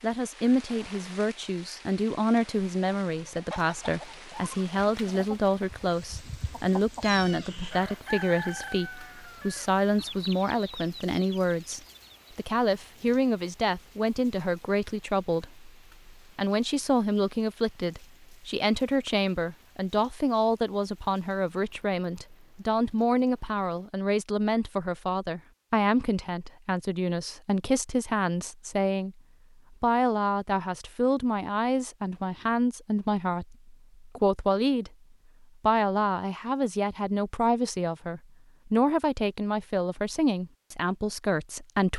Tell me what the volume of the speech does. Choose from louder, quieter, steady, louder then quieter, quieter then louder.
steady.